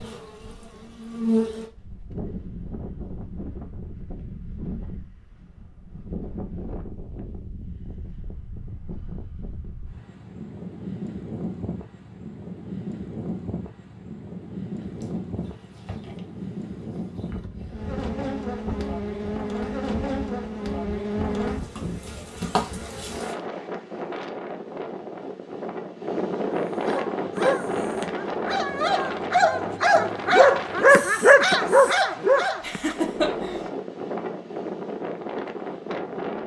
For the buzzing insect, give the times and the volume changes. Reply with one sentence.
You can hear the buzzing insect briefly from 0.0 to 1.6 s; and from 14.8 to 23.4 s, getting louder.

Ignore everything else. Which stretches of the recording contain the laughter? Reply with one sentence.
You can hear the laughter from 32.6 to 33.6 s.